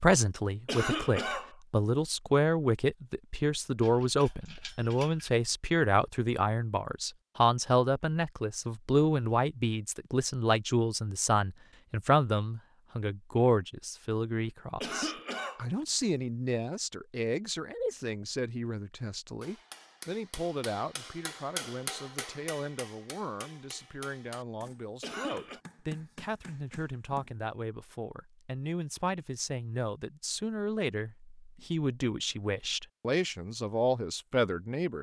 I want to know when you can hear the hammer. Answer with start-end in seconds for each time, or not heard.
19.4-27.4.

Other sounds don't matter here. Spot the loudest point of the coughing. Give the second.
1 s.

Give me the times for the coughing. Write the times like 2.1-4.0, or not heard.
0.7-1.5, 14.8-15.7, 25.0-25.6.